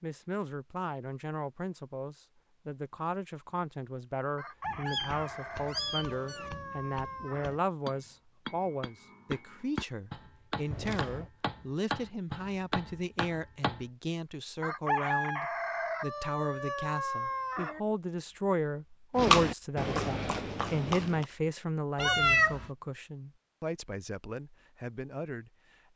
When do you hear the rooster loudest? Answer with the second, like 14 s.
15 s.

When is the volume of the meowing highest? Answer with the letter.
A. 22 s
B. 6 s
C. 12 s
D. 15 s
A.